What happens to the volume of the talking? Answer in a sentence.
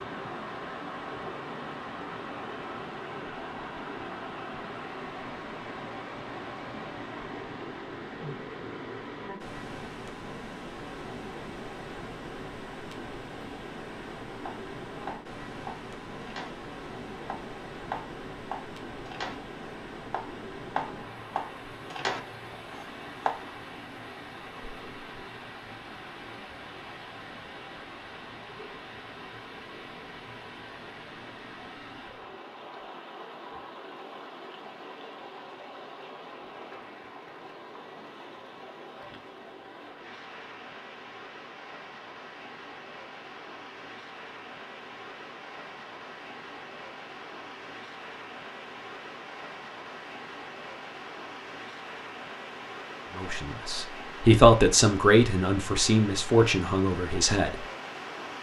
The loudness of the talking goes up, then down.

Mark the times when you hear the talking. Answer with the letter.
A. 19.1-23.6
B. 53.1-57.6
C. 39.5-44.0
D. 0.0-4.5
B.